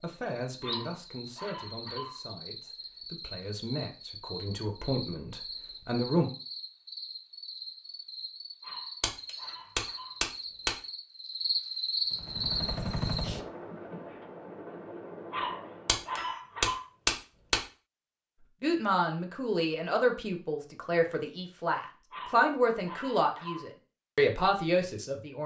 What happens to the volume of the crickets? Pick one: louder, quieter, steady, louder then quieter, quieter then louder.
louder.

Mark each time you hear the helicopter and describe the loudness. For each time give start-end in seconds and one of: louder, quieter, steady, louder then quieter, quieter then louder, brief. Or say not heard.
12.1-16.1 quieter.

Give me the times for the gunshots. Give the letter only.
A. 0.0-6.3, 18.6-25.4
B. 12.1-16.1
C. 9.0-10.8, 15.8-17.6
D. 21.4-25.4
C.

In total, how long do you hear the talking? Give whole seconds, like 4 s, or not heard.
13 s.